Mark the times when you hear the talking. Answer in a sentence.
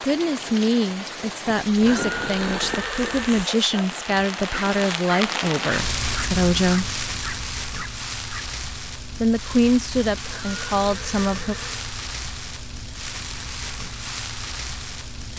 You can hear the talking from 0.0 to 6.8 s and from 9.2 to 11.6 s.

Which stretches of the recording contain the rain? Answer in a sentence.
You can hear the rain from 0.0 to 15.3 s.